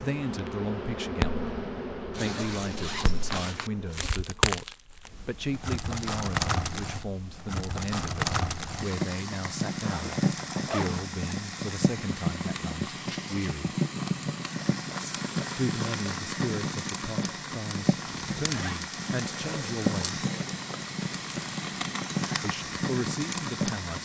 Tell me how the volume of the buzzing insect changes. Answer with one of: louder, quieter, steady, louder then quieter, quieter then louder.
quieter.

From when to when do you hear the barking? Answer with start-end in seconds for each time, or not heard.
not heard.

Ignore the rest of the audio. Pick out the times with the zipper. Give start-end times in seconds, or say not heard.
2.1-3.7, 9.8-11.1, 18.1-18.9.